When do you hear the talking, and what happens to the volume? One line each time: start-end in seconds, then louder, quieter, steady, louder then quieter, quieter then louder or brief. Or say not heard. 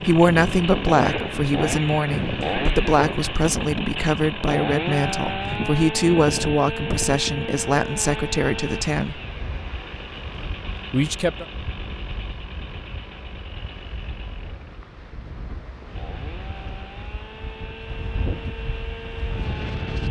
0.0-9.2 steady
10.9-11.4 brief.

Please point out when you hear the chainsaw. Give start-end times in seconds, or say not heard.
0.0-20.0.